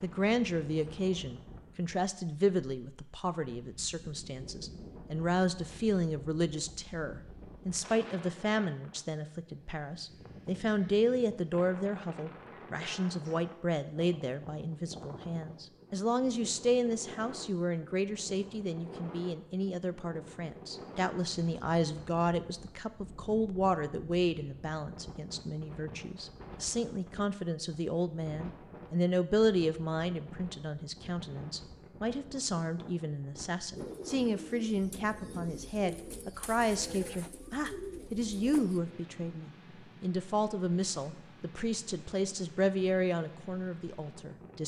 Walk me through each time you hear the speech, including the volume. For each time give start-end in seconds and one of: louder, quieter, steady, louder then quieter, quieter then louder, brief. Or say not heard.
0.0-44.6 steady.